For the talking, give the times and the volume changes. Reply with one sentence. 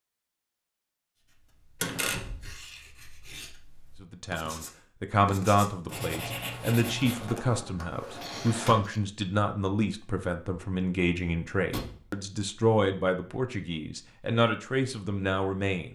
You can hear the talking from 4.0 to 15.9 s, at a steady volume.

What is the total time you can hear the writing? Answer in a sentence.
The writing can be heard for 6 seconds in total.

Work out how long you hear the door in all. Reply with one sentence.
The door can be heard for 3 seconds in total.